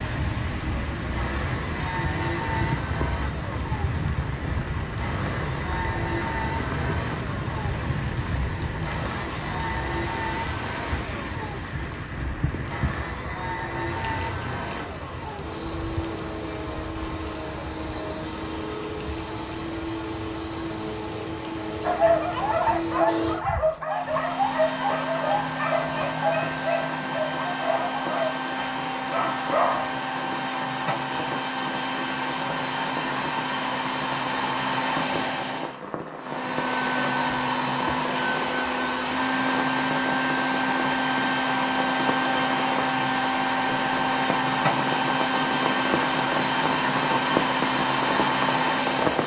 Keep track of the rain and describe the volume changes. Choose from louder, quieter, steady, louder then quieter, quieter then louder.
quieter then louder.